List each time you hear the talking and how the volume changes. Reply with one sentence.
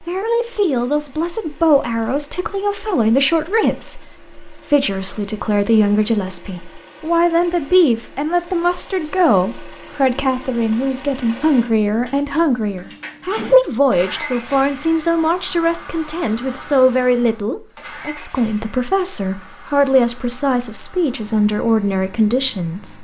You can hear the talking from 0.1 to 22.9 s, at a steady volume.